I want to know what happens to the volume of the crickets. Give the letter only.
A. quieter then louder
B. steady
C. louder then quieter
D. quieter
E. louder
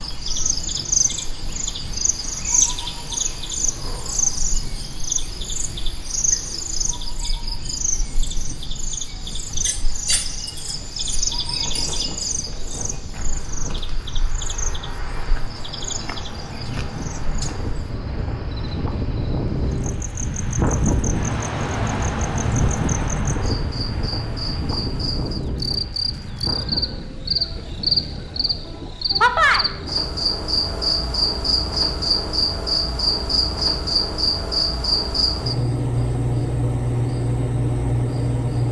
A.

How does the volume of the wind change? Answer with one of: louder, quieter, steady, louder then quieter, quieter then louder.
louder then quieter.